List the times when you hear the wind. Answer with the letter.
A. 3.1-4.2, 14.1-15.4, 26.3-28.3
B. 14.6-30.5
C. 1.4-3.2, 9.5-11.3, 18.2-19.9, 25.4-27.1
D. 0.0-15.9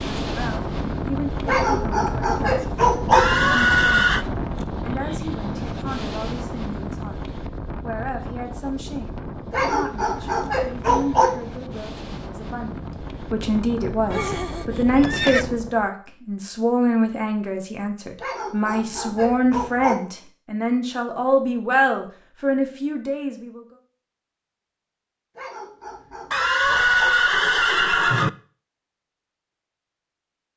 D.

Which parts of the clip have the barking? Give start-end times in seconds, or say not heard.
1.4-3.2, 9.5-11.3, 18.2-19.9, 25.4-27.1.